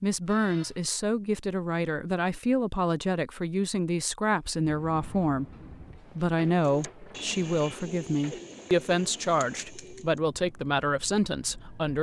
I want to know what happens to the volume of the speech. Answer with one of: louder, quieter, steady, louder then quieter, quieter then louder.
steady.